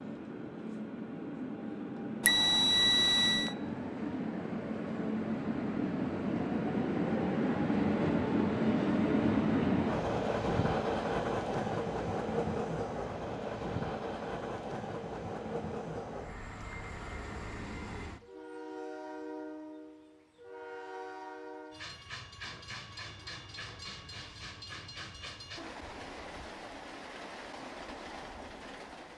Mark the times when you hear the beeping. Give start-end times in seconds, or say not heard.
2.2-3.5.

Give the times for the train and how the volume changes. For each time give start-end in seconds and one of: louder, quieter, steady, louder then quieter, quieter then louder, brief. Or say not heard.
0.0-29.1 louder then quieter.